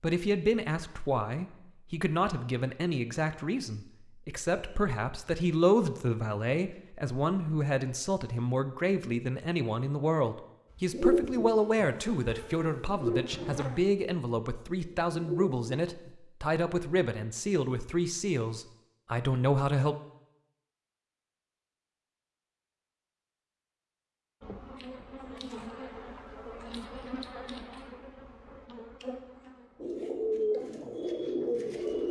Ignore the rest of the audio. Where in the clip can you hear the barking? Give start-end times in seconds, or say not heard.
not heard.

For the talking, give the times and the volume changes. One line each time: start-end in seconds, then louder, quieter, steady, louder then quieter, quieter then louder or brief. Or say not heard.
0.0-19.9 steady.